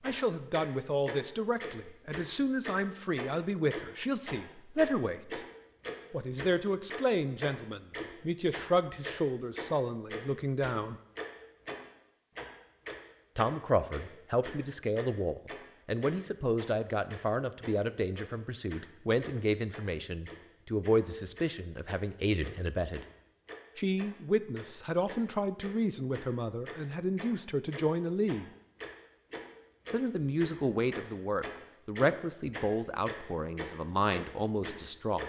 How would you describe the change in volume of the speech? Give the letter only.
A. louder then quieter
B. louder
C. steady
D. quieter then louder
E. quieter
C.